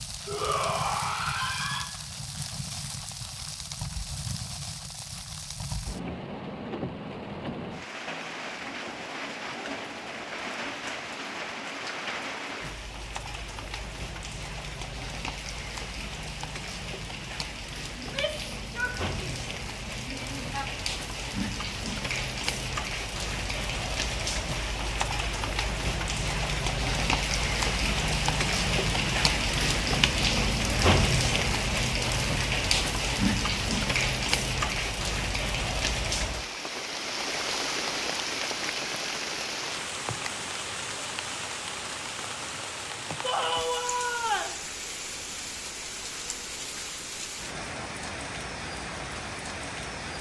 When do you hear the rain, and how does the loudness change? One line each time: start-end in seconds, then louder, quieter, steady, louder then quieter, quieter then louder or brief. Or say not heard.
0.0-50.1 louder then quieter.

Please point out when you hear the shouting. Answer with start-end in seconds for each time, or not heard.
0.2-1.9, 17.9-20.6, 43.2-44.5.